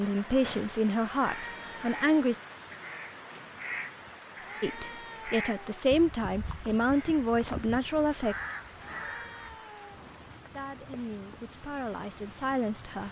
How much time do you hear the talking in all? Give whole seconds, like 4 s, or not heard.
9 s.